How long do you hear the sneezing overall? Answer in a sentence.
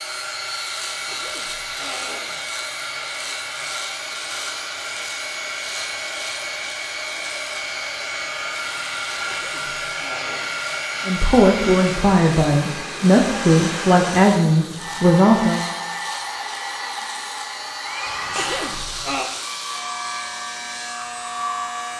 You can hear the sneezing for 5 seconds altogether.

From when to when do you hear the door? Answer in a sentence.
You can't hear the door here.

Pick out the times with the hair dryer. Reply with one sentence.
You can hear the hair dryer from 0.0 to 21.9 s.